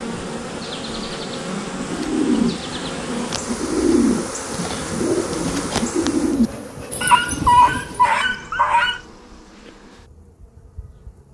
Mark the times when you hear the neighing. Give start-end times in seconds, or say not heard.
not heard.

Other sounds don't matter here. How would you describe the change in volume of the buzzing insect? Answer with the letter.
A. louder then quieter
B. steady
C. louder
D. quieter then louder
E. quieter
E.